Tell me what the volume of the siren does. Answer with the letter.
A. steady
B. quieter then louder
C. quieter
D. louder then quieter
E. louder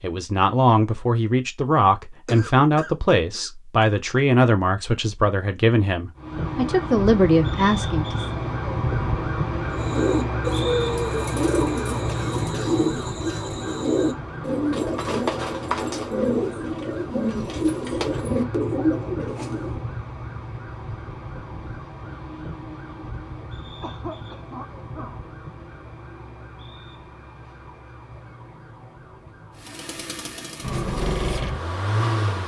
C.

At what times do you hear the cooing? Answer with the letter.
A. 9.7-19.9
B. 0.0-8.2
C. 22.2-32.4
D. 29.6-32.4
A.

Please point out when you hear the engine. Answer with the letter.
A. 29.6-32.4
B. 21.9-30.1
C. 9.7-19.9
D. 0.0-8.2
A.